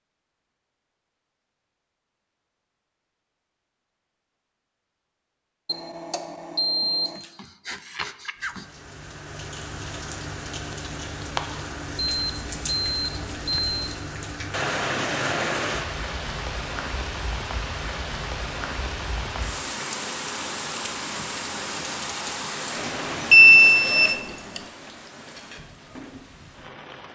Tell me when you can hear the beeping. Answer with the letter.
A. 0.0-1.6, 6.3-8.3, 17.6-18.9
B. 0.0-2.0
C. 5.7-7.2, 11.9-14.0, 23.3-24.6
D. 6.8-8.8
C.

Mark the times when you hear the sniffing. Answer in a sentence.
You can hear the sniffing from 6.8 to 8.8 s.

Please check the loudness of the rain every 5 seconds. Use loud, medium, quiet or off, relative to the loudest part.
off, medium, loud, loud, loud, quiet.